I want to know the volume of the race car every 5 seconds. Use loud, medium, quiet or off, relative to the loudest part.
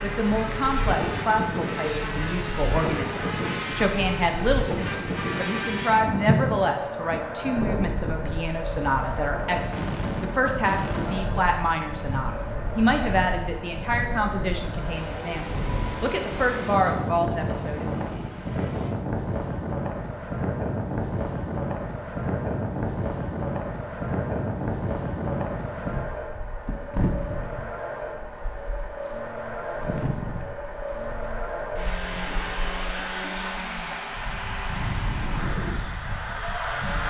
loud, loud, medium, medium, medium, loud, loud, loud.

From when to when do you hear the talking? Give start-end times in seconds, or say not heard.
0.0-17.9.